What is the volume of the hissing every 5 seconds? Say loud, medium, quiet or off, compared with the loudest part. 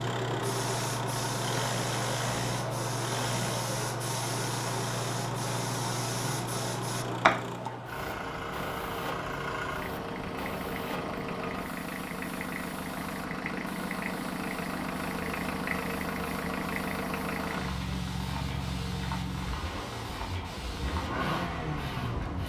loud, loud, medium, medium, medium.